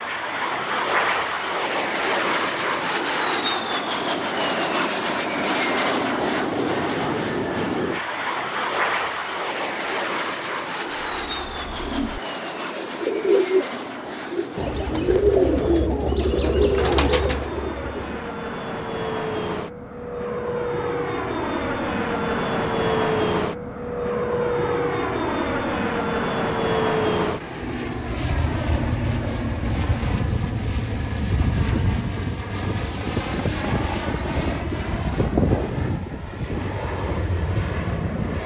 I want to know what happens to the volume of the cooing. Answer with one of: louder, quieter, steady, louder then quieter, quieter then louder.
louder.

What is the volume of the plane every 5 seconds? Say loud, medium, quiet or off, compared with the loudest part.
loud, loud, medium, medium, loud, loud, loud, loud.